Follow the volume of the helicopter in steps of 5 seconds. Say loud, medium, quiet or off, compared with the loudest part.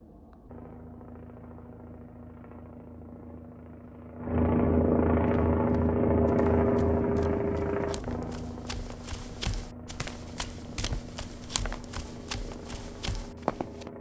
medium, loud, quiet.